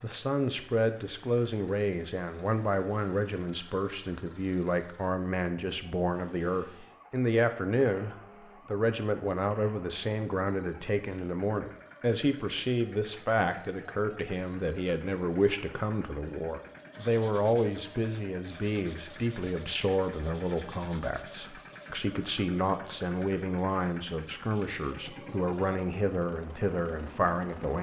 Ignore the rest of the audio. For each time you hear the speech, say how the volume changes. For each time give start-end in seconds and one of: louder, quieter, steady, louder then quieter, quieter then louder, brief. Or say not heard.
0.0-27.7 steady.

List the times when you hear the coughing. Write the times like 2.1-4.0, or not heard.
not heard.